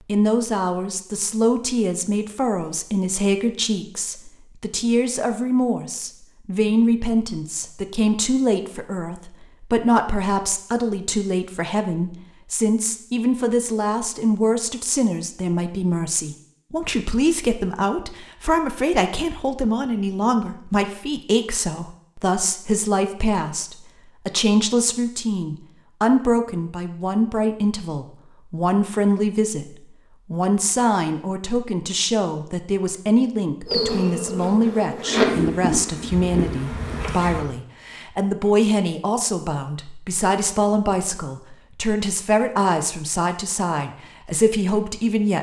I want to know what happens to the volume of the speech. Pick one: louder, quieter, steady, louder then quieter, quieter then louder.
steady.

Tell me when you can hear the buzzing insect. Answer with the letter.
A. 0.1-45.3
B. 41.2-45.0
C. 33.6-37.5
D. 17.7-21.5
C.